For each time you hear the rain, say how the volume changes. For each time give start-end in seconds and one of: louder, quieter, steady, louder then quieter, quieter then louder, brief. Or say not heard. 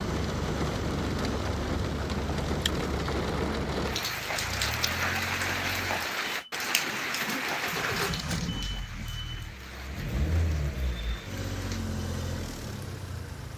0.0-13.5 quieter.